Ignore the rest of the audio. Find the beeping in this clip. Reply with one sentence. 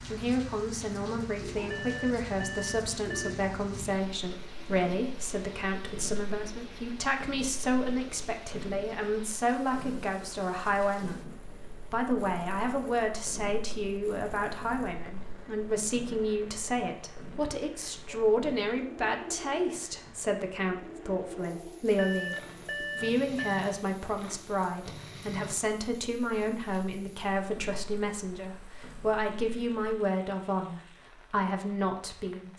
You can hear the beeping from 1.6 to 3.4 s and from 21.9 to 23.6 s.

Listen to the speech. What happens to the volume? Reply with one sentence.
The volume of the speech stays about the same.